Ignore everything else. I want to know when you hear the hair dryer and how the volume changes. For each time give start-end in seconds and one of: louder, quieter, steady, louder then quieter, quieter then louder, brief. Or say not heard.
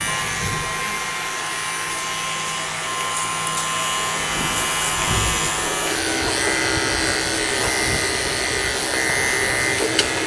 0.0-10.2 steady.